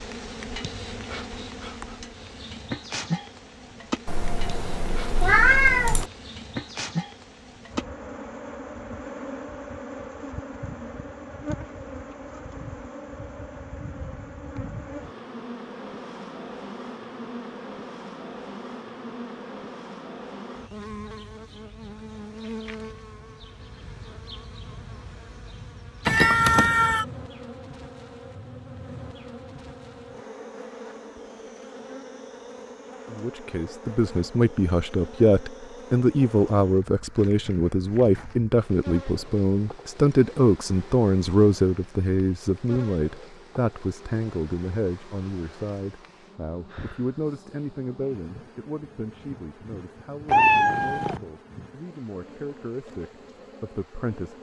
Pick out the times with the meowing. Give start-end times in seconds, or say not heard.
4.0-6.0, 26.1-27.1, 50.2-51.2.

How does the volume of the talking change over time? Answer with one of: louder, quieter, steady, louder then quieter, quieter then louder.
quieter.